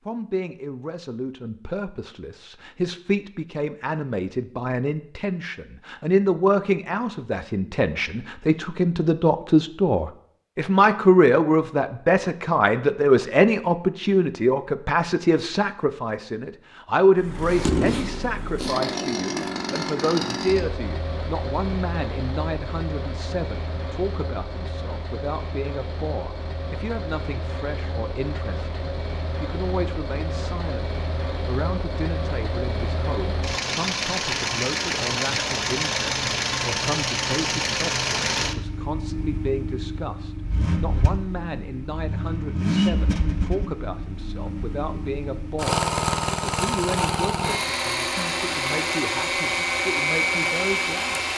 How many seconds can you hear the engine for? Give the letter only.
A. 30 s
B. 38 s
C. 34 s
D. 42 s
C.